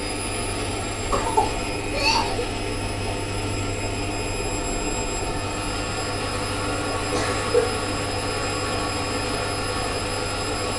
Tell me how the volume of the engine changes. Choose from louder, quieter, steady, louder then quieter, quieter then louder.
steady.